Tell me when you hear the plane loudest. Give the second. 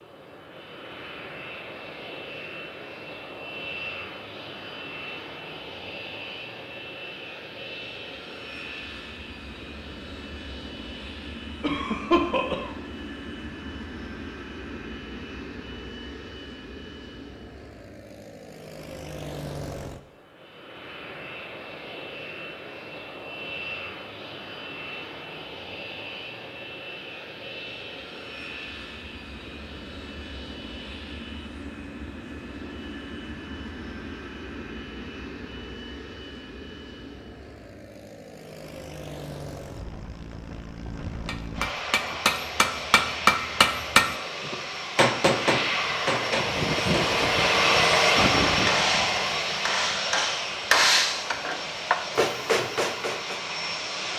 48 s.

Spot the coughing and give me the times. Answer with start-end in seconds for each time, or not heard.
11.6-12.7.